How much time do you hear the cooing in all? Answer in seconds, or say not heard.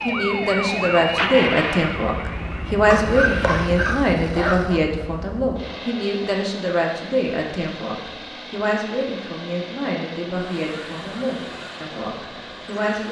not heard.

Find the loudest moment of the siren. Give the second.
1 s.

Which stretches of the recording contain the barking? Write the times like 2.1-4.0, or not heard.
2.9-4.8.